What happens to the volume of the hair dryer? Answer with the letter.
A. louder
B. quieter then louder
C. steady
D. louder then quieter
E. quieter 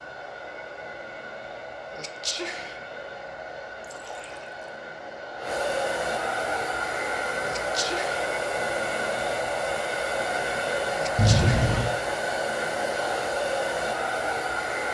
A.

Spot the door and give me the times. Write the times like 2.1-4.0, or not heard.
not heard.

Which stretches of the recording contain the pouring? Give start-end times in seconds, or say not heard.
3.8-4.7, 11.2-11.9.